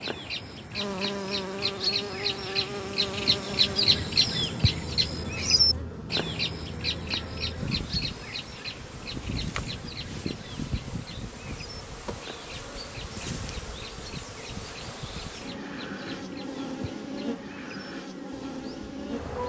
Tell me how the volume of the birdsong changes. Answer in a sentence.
The loudness of the birdsong goes down.